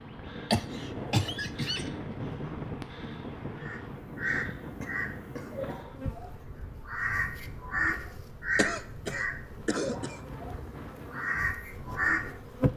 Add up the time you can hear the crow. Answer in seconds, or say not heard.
9 s.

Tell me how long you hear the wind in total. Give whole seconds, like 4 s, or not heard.
13 s.